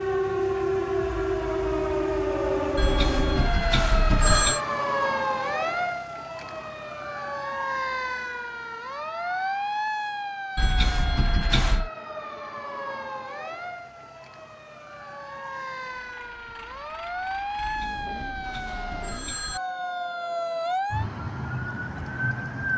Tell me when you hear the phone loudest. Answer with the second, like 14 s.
4 s.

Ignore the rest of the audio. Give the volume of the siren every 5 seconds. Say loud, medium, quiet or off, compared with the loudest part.
loud, loud, medium, medium, loud.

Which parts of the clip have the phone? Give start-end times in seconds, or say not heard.
2.8-4.6, 10.6-11.9, 17.6-19.6.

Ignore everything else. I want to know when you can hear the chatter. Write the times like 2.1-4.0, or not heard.
not heard.